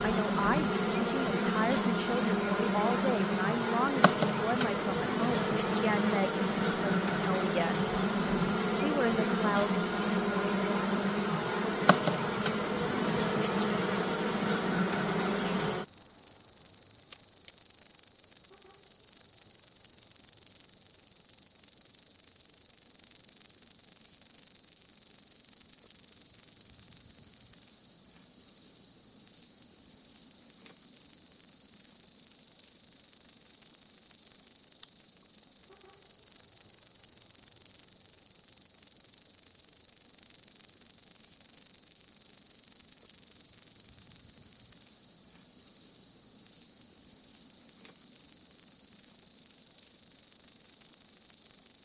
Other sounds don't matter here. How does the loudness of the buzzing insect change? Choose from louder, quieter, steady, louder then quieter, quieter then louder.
steady.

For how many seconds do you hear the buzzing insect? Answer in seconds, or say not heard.
52 s.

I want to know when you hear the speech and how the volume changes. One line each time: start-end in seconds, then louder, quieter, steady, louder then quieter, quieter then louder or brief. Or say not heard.
0.0-7.8 steady
8.8-9.9 brief.